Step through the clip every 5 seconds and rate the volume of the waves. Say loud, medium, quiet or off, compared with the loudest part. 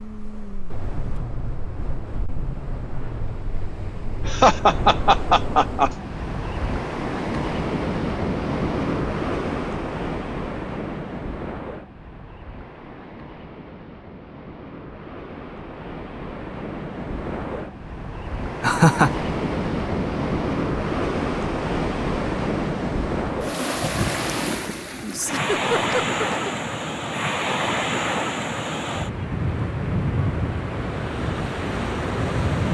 medium, loud, medium, medium, loud, loud, loud.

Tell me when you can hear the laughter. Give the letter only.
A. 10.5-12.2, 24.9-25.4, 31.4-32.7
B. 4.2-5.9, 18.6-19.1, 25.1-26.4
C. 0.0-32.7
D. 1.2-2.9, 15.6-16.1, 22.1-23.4
B.